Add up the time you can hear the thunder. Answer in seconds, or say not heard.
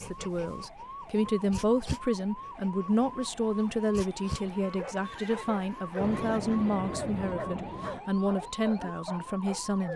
2 s.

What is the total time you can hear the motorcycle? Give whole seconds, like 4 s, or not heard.
not heard.